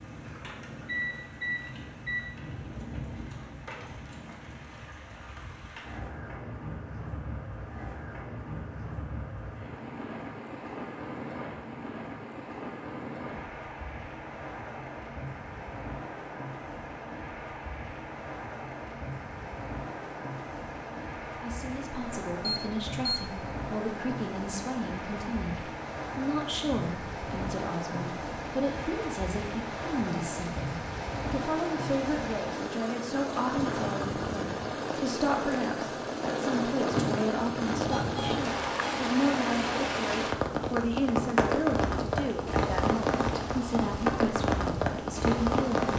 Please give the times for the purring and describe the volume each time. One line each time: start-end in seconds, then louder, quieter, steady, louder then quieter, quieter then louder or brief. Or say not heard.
not heard.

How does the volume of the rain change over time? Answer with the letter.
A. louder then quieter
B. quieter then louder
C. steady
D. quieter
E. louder
E.